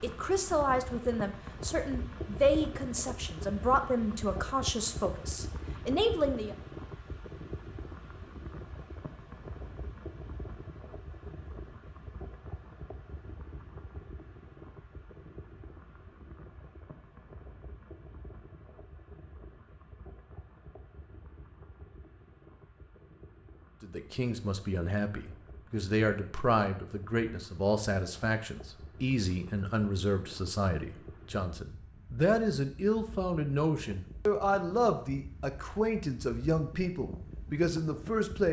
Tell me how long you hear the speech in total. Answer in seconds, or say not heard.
21 s.